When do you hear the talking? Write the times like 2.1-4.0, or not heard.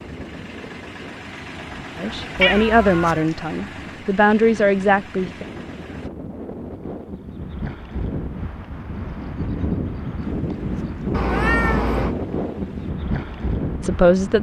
1.9-5.5, 13.8-14.3.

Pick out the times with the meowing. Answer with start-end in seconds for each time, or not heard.
2.4-3.2, 11.1-12.2.